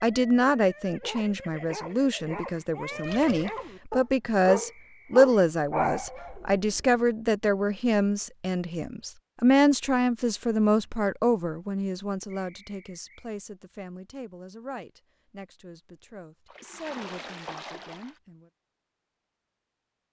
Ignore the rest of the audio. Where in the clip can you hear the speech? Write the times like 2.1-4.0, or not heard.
0.0-18.5.